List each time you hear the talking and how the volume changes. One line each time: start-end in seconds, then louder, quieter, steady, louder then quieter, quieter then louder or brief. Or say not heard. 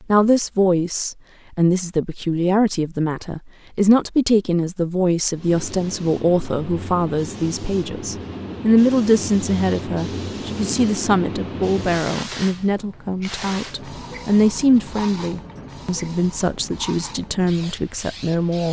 0.1-18.6 steady.